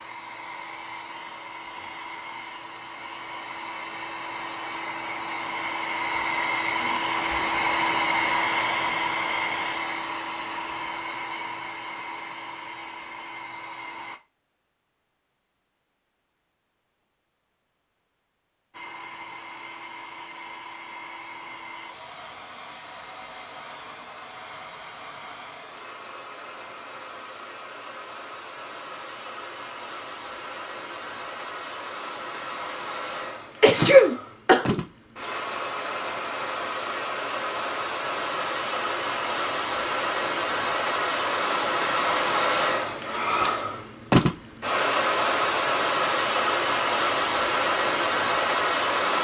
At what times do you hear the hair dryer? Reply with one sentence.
You can hear the hair dryer from 0.0 to 14.2 s and from 18.7 to 49.2 s.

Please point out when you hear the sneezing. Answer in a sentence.
You can hear the sneezing from 33.6 to 34.8 s.